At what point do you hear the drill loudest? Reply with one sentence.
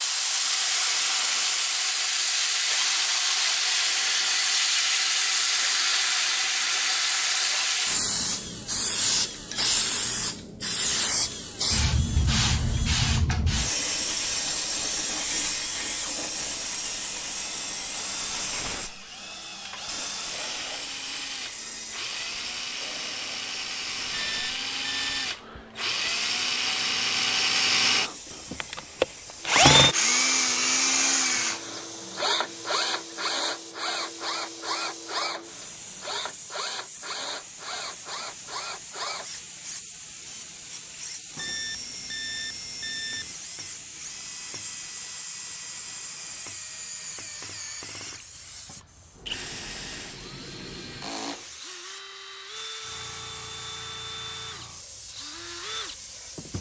The volume of the drill peaks at 30 seconds.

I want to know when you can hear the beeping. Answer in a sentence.
The beeping can be heard from 24.1 to 25.4 s and from 41.4 to 43.4 s.